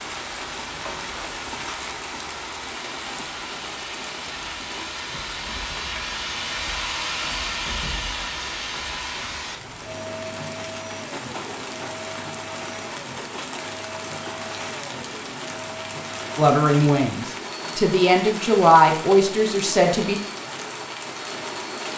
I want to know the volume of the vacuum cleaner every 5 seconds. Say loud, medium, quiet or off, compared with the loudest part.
medium, loud, medium, medium, medium.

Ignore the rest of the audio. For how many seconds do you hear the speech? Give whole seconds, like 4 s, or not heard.
4 s.